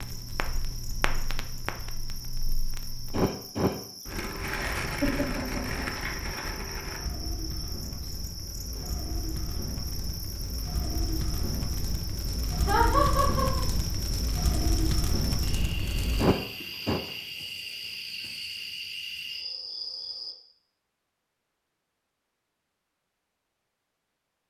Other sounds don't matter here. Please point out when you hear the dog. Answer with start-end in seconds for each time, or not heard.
not heard.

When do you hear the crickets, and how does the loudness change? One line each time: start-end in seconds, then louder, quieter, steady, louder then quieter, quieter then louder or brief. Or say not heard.
0.0-20.4 louder.